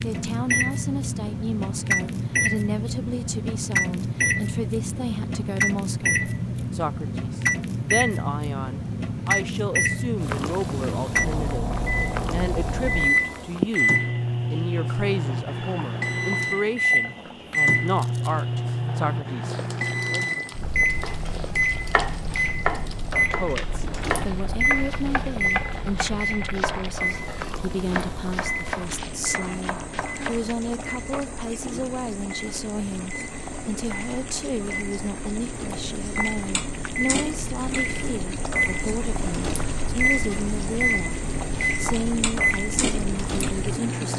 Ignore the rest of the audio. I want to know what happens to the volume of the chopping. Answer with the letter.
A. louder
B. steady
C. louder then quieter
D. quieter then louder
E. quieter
E.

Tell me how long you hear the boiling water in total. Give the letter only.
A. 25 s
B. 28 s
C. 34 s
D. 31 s
C.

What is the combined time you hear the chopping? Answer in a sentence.
You can hear the chopping for 10 seconds altogether.